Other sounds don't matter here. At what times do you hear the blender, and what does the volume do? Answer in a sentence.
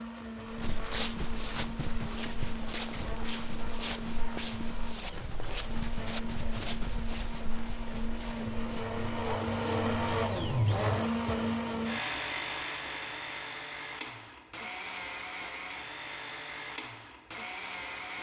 You can hear the blender from 0.0 to 18.1 s, getting louder then quieter.